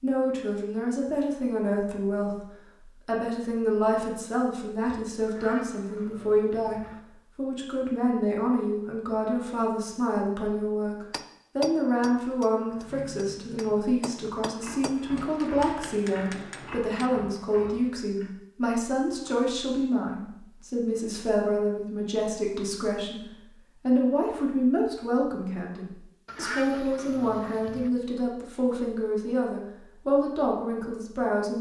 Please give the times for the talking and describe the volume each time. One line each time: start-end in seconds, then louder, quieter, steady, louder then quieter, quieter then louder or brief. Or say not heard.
0.0-31.5 steady.